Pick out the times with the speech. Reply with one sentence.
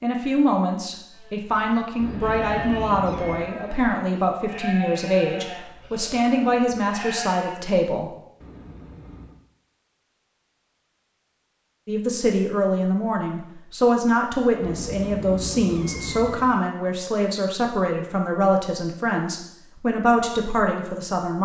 You can hear the speech from 0.0 to 8.1 s and from 11.8 to 21.4 s.